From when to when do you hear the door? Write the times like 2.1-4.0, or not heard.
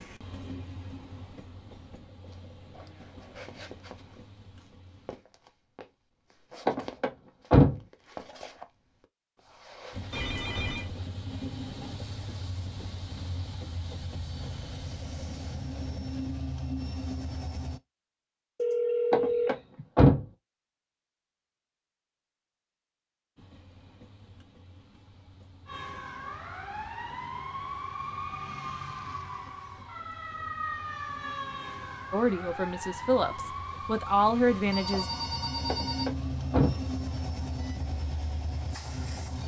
6.7-7.8, 19.1-20.2, 35.6-36.8.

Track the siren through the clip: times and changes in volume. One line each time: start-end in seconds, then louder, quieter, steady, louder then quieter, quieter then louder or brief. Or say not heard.
25.6-37.8 quieter.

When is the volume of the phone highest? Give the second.
19 s.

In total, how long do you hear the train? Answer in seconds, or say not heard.
29 s.